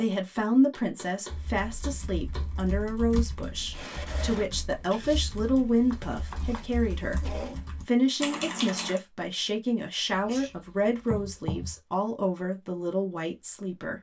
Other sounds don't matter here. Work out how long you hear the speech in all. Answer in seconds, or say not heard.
13 s.